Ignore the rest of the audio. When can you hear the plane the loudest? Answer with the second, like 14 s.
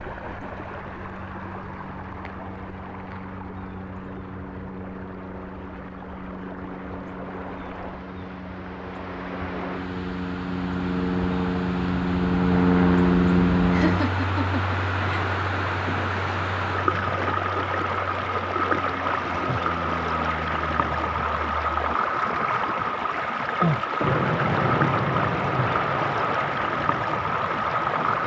13 s.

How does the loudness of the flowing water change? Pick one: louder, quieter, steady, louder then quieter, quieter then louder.
louder.